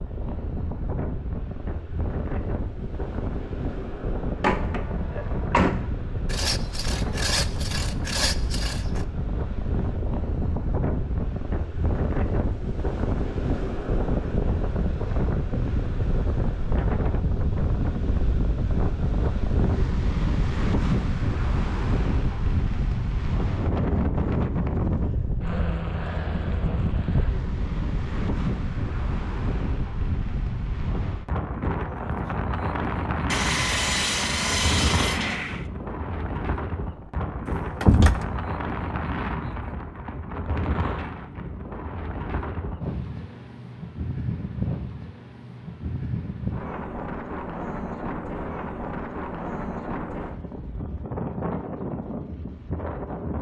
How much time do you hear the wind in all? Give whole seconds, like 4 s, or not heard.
53 s.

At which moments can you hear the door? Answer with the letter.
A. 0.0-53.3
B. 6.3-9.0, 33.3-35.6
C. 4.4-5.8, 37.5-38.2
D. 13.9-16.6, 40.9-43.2
C.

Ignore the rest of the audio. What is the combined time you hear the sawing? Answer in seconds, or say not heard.
5 s.